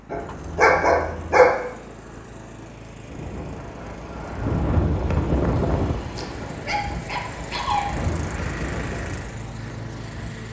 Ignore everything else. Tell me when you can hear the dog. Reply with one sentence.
You can hear the dog from 0.1 to 1.5 s and from 5.5 to 7.8 s.